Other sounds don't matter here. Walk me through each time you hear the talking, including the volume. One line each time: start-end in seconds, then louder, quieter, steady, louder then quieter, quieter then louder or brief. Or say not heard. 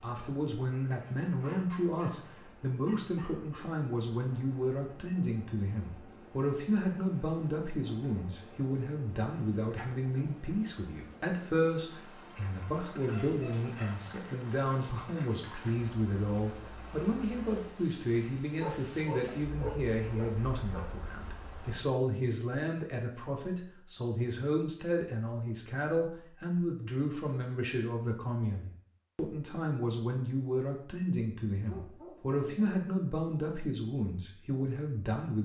0.0-35.3 steady.